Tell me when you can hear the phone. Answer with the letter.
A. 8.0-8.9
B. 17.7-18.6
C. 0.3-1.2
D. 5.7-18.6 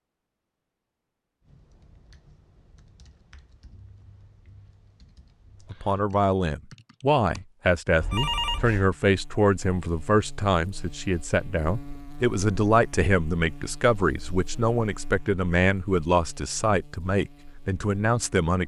A.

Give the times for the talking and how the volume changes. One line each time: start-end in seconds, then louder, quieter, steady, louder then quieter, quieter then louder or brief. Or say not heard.
5.7-18.6 steady.